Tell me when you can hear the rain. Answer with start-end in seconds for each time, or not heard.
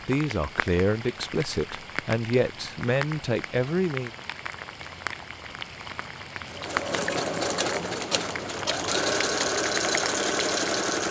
0.0-11.0.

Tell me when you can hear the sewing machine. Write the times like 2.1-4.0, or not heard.
6.5-11.0.